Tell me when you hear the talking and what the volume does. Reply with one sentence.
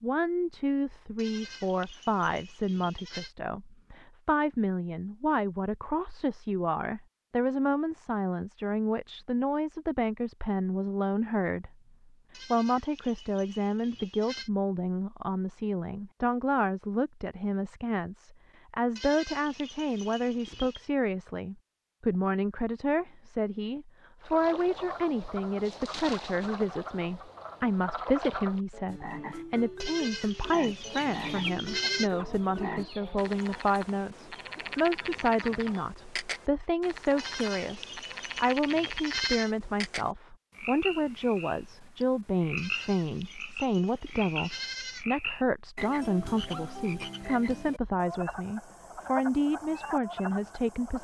The talking can be heard from 0.0 to 11.7 s, at a steady volume; and from 12.5 to 50.9 s, at a steady volume.